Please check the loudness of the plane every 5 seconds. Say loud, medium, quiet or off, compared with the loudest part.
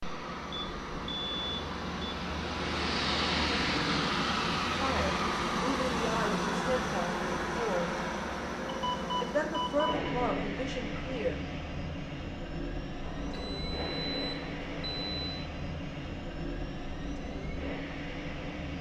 loud, loud, medium, medium.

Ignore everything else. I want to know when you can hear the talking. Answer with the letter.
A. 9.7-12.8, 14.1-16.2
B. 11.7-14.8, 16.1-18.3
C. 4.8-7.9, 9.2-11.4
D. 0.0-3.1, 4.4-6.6
C.